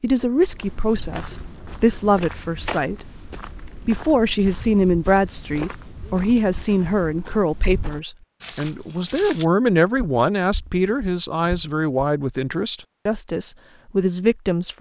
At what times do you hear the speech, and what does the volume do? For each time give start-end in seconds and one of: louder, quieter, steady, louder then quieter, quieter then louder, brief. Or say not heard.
0.0-14.7 steady.